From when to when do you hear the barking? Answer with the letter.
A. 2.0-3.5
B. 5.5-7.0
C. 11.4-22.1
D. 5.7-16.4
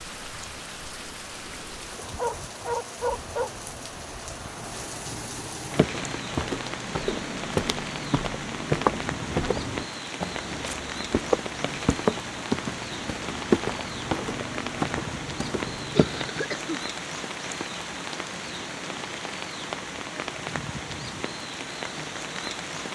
A.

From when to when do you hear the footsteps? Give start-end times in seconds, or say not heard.
5.7-16.4.